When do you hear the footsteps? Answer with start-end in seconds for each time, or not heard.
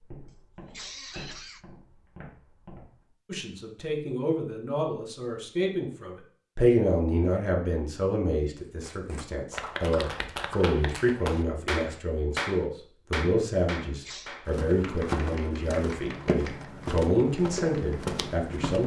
0.0-3.1, 14.4-18.8.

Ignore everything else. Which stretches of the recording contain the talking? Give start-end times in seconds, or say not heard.
3.2-18.8.